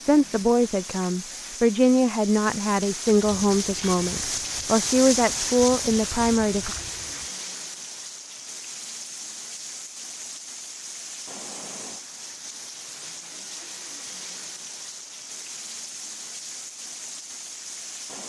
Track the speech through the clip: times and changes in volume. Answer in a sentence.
The speech can be heard from 0.0 to 6.8 s, at a steady volume.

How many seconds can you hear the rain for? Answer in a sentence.
The rain can be heard for 18 seconds in total.